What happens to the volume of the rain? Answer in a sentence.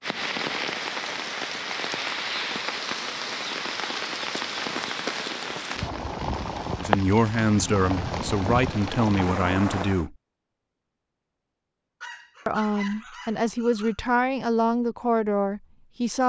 The loudness of the rain stays about the same.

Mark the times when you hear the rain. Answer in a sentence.
The rain can be heard from 0.0 to 10.1 s.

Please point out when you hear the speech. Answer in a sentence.
You can hear the speech from 6.8 to 10.2 s and from 12.4 to 16.2 s.